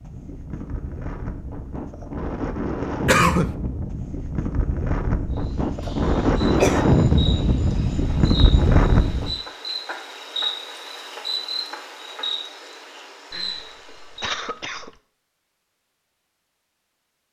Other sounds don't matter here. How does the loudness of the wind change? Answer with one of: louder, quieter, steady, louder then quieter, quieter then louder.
louder.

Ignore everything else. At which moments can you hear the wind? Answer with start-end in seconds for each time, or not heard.
0.0-9.3.